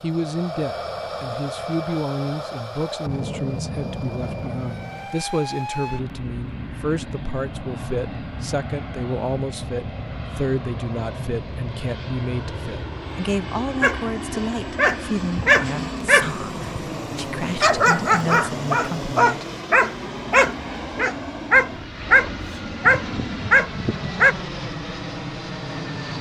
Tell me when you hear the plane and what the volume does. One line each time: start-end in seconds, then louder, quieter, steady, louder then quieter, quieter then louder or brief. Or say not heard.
0.0-26.1 steady.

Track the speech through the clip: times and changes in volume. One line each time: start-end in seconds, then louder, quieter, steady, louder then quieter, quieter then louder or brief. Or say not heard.
0.0-19.4 steady.